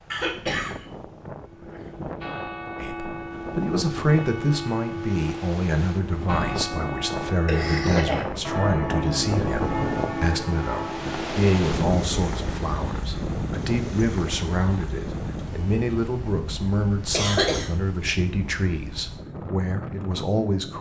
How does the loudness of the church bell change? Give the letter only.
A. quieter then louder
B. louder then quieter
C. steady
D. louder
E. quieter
D.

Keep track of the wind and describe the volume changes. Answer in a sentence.
The volume of the wind goes up, then down.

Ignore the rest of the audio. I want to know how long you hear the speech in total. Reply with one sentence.
The speech can be heard for 18 seconds in total.